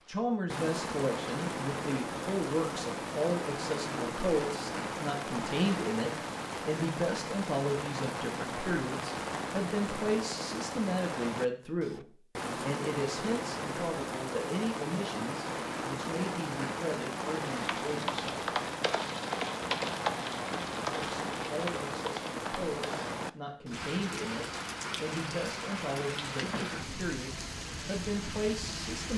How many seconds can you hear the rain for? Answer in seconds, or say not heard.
29 s.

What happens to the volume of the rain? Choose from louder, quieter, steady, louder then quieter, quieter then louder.
steady.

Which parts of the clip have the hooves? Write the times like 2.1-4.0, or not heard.
17.4-23.1.